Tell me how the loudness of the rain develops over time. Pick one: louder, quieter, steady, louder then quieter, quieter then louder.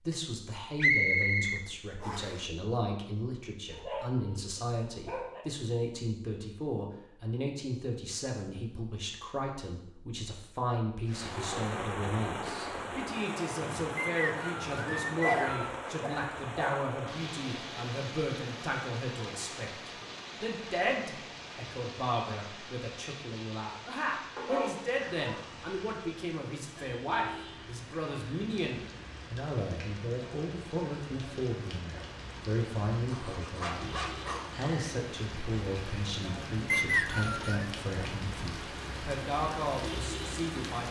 quieter then louder.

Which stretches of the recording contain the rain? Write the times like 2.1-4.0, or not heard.
11.1-40.8.